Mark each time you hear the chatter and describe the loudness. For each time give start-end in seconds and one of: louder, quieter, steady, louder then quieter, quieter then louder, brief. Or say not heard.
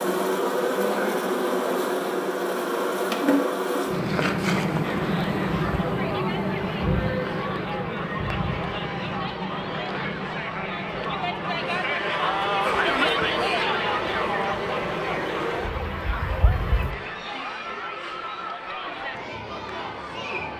4.8-20.5 louder then quieter.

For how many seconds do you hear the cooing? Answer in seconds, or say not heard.
not heard.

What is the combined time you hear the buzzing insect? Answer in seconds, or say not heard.
17 s.